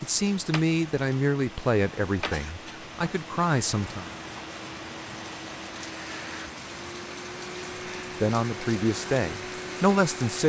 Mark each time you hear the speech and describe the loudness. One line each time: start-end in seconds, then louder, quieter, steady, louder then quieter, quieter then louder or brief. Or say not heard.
0.0-4.0 quieter then louder
8.2-10.4 brief.